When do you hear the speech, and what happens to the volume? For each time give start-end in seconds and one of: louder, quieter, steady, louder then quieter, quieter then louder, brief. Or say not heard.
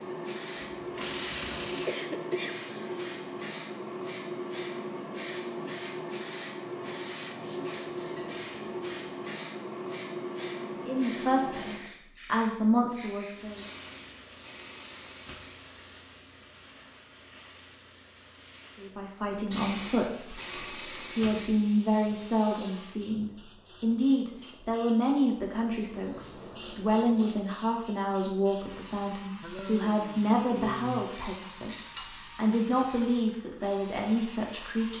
10.8-13.6 brief
18.8-34.9 steady.